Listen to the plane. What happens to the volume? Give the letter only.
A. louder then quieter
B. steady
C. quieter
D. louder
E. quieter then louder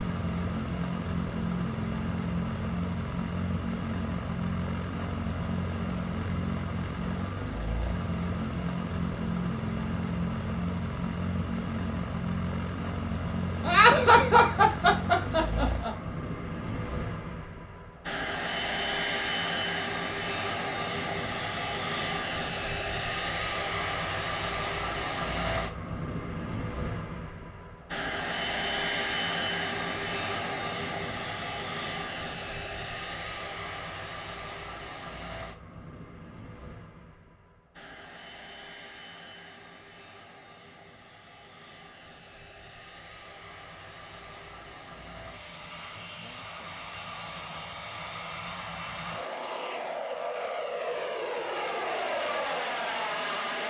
E.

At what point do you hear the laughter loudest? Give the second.
14 s.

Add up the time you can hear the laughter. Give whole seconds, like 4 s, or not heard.
2 s.